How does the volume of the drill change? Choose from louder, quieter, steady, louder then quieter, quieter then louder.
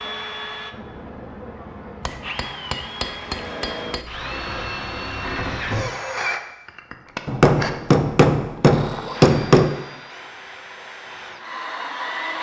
louder then quieter.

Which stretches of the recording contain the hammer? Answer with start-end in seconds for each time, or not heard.
2.0-4.0, 7.2-9.8.